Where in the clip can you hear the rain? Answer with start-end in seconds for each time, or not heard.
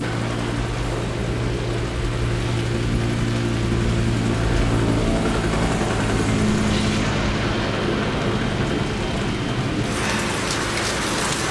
0.0-11.4.